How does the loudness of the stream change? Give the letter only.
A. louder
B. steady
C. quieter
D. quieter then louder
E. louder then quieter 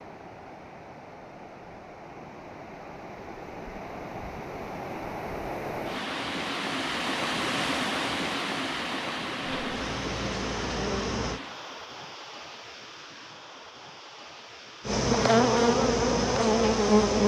E.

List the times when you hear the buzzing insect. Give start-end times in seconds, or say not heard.
9.4-11.4, 14.8-17.2.